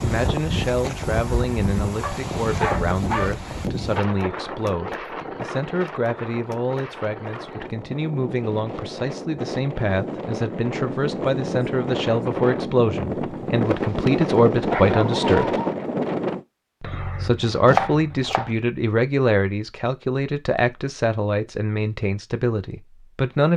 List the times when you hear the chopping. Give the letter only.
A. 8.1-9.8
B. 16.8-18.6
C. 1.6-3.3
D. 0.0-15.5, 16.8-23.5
B.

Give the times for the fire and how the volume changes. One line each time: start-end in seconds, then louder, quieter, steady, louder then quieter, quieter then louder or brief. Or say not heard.
not heard.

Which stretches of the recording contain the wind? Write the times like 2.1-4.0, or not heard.
0.0-16.4.